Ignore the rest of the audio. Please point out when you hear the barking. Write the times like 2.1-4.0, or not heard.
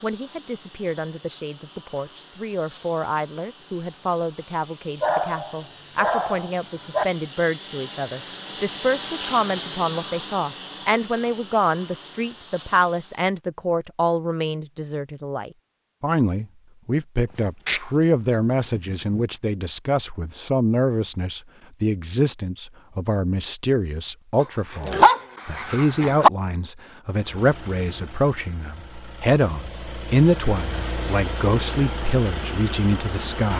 5.0-7.0, 17.4-17.8, 18.7-19.2, 24.4-26.3.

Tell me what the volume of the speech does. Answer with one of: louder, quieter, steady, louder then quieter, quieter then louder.
louder.